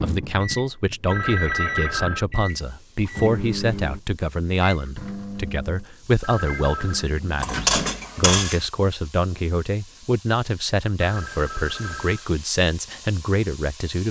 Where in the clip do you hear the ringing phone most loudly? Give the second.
2 s.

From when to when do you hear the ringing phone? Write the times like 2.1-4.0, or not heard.
1.1-2.2, 6.2-7.0, 11.0-12.2.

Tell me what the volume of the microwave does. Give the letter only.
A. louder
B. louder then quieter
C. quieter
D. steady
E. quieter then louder
C.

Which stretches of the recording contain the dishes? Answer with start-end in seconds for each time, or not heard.
7.4-8.7.